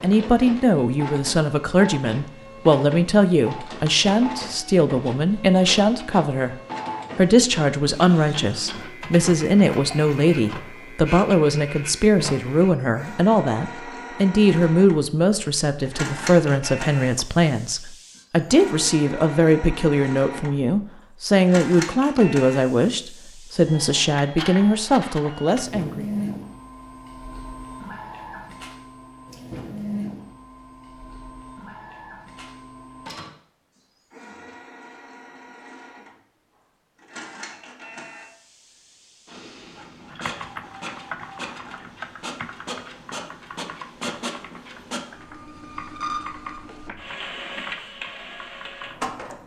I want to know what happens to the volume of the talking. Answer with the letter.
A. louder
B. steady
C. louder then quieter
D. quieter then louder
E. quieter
B.